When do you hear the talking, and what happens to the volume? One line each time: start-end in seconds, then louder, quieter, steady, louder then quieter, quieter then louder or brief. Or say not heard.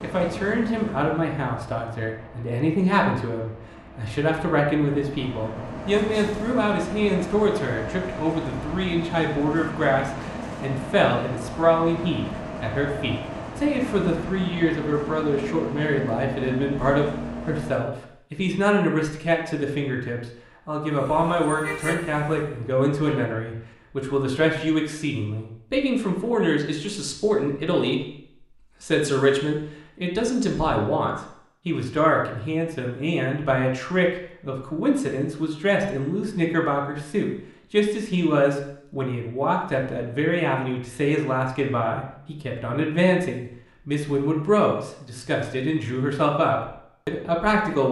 0.0-47.8 steady.